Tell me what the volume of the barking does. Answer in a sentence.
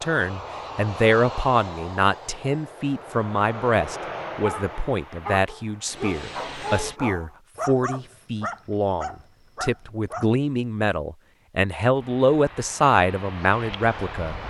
The loudness of the barking stays about the same.